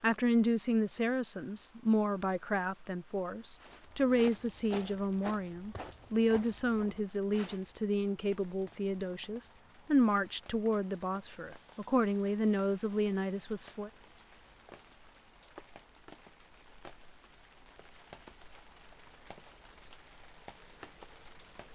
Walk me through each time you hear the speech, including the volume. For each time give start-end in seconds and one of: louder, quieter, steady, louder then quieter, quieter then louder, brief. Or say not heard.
0.0-13.9 steady.